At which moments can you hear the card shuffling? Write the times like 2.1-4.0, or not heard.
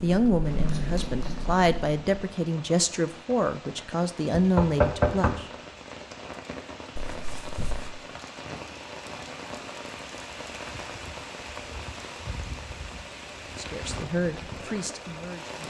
7.0-7.9.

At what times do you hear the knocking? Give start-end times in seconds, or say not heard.
4.3-5.5.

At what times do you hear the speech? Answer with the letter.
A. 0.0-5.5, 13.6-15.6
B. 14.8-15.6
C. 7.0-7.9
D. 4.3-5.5
A.